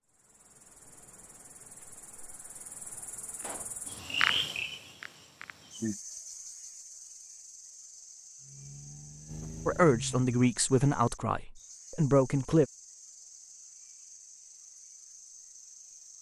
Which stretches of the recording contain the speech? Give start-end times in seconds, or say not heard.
9.7-12.7.